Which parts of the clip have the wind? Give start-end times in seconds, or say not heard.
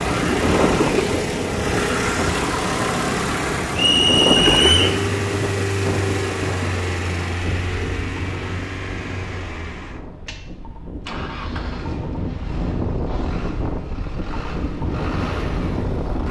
0.0-16.2.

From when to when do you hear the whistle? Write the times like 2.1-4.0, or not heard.
3.8-5.0.